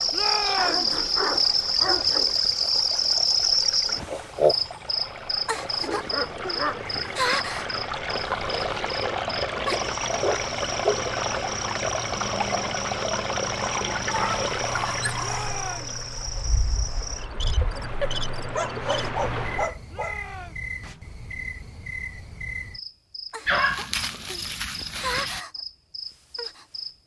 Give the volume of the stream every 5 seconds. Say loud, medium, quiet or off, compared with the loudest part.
quiet, loud, loud, medium, off, off.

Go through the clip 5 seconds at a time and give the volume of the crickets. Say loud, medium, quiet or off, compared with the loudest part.
loud, medium, quiet, quiet, quiet, medium.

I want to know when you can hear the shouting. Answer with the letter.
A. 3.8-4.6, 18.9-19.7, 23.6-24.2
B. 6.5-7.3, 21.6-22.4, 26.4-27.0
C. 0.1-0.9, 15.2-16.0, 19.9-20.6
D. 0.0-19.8
C.